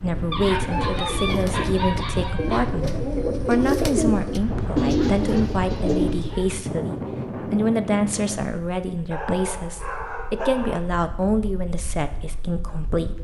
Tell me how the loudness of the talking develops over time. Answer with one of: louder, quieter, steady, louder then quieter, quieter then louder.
steady.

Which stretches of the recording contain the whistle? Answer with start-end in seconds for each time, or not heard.
not heard.